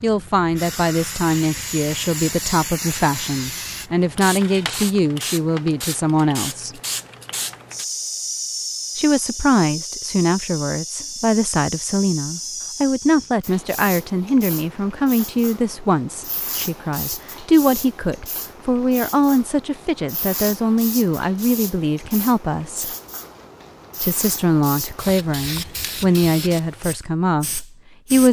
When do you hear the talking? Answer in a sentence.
You can hear the talking from 0.0 to 6.8 s, from 8.9 to 22.9 s and from 24.0 to 28.2 s.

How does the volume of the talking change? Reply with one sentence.
The loudness of the talking stays about the same.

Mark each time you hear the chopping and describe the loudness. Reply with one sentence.
The chopping can't be heard in this clip.